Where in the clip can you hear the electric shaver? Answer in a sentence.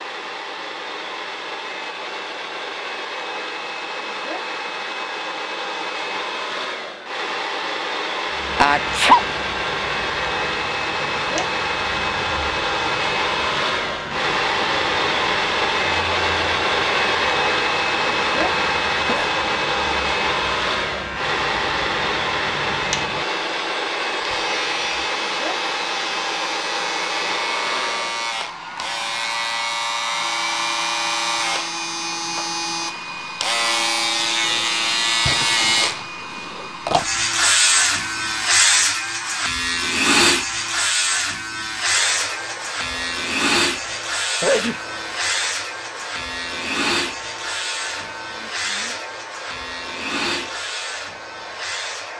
You can hear the electric shaver from 8.2 to 52.1 s.